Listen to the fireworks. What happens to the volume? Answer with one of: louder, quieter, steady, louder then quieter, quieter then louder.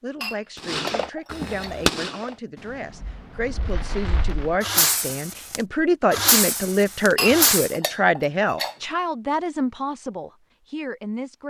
quieter then louder.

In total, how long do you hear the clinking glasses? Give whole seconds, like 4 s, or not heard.
3 s.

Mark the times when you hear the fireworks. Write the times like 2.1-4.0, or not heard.
0.6-7.8.